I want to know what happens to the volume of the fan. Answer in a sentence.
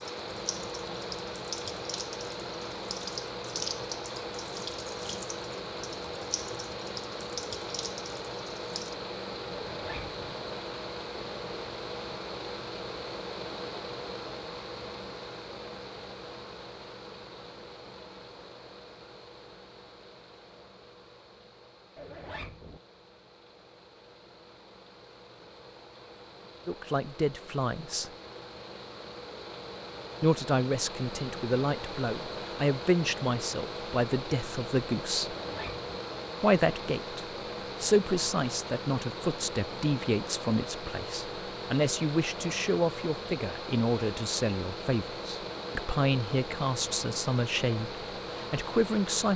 The volume of the fan goes down, then up.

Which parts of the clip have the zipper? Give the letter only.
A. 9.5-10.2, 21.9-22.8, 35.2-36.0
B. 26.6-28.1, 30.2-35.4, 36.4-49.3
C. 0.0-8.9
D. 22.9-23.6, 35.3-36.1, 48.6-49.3
A.